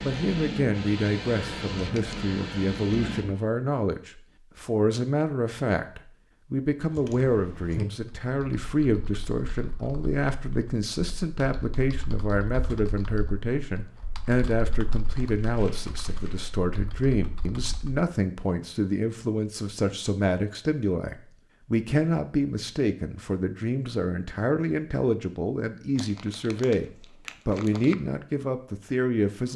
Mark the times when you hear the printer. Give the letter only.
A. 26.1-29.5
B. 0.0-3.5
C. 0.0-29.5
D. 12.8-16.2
B.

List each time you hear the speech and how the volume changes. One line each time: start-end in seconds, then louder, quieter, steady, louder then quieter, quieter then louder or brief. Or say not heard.
0.0-29.5 steady.